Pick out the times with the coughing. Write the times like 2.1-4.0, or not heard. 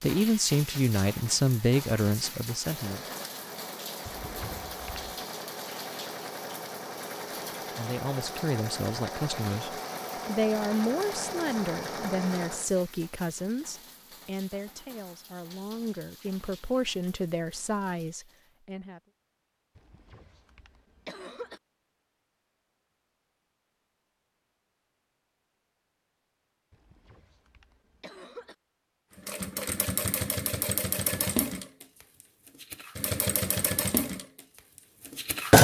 4.0-5.1, 19.8-21.6, 26.7-28.6.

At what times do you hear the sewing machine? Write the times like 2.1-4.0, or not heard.
2.5-12.7, 29.1-35.5.